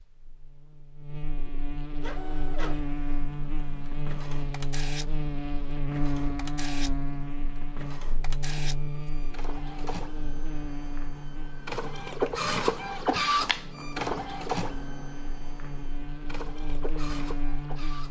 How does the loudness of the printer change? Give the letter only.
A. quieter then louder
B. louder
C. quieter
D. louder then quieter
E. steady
D.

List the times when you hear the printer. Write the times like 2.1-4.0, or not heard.
2.0-18.0.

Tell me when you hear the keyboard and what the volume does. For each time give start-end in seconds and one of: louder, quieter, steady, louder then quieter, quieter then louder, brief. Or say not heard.
not heard.